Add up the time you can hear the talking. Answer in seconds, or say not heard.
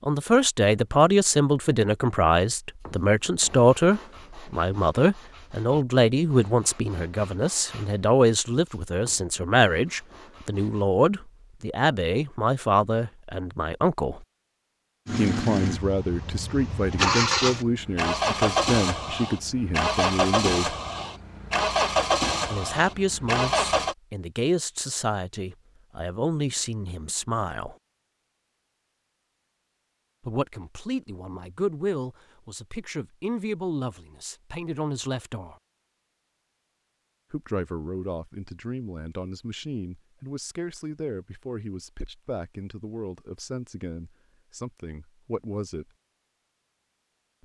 39 s.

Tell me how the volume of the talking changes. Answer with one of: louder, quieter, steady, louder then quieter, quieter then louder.
quieter.